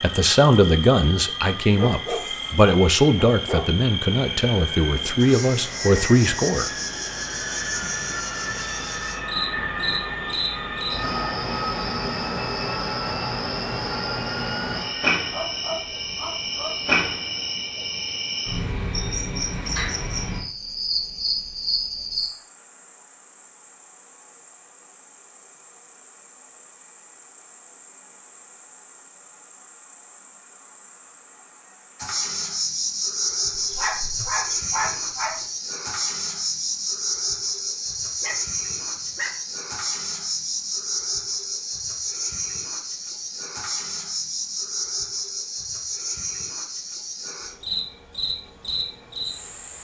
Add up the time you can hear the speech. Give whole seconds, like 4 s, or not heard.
7 s.